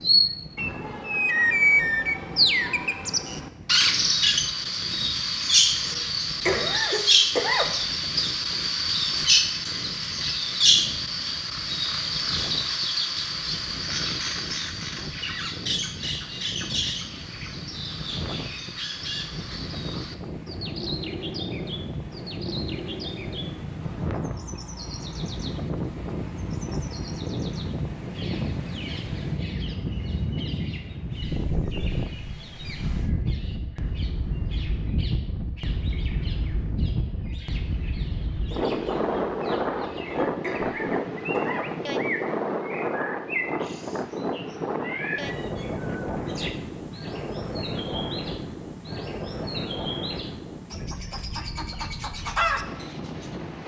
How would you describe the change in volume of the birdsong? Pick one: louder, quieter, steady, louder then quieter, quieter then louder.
quieter then louder.